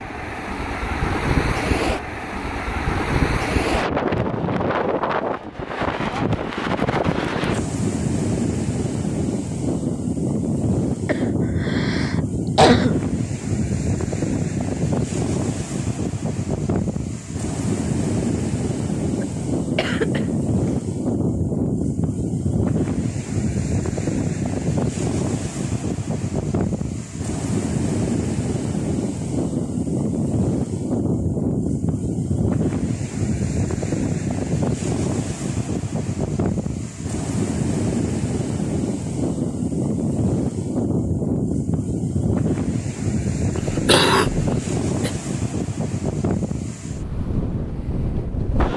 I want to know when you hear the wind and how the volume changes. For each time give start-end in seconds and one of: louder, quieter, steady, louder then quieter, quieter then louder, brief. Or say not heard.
0.0-48.7 steady.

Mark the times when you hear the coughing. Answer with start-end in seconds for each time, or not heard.
11.1-13.1, 19.2-20.2, 43.5-45.1.